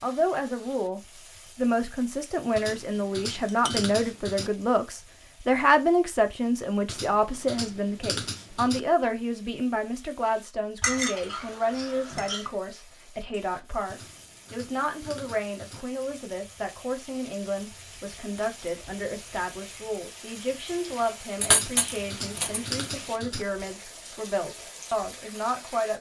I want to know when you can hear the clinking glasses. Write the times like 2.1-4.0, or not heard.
3.1-3.9, 10.8-12.5, 21.4-22.6.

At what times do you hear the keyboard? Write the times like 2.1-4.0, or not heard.
2.5-4.5, 6.8-8.8, 13.9-15.8, 21.5-23.4.